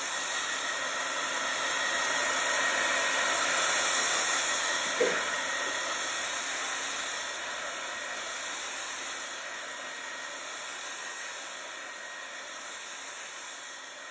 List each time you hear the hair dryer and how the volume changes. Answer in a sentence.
You can hear the hair dryer from 0.0 to 14.0 s, getting quieter.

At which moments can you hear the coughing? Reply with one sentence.
The coughing can be heard from 4.8 to 5.8 s.